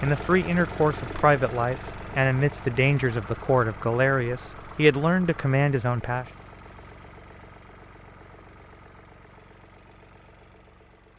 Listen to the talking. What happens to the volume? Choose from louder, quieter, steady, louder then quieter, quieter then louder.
steady.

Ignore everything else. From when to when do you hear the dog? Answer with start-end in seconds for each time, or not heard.
not heard.